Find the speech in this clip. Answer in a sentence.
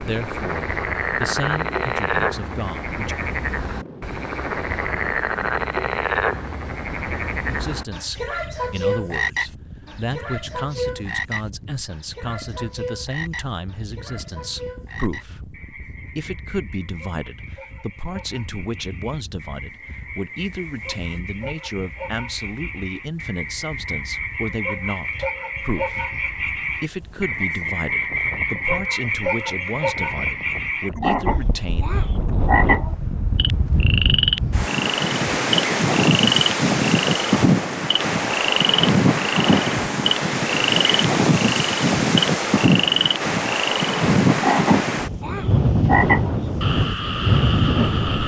The speech can be heard from 0.0 to 3.1 s and from 7.5 to 31.9 s.